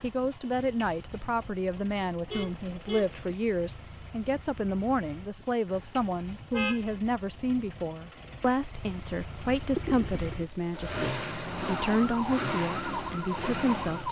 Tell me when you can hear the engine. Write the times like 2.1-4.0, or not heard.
0.0-14.0.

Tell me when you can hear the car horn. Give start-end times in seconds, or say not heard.
2.2-3.1, 5.7-7.0, 9.8-10.4.